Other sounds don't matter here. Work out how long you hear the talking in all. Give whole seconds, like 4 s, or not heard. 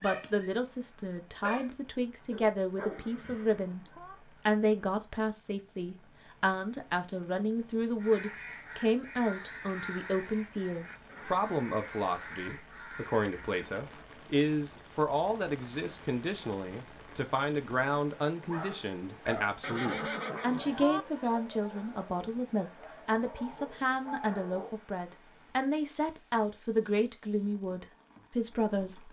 28 s.